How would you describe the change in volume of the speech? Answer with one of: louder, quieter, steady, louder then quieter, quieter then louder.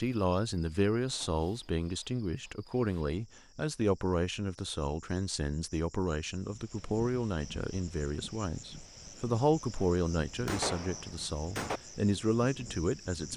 steady.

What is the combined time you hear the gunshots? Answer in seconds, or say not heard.
2 s.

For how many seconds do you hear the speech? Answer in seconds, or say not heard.
13 s.